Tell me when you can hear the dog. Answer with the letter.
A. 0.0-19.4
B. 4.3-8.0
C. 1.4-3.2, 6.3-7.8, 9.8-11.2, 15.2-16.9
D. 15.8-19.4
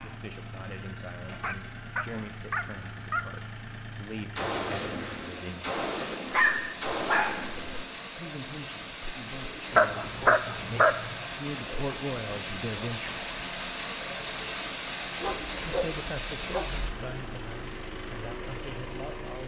C.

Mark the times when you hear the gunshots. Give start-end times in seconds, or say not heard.
4.3-8.0.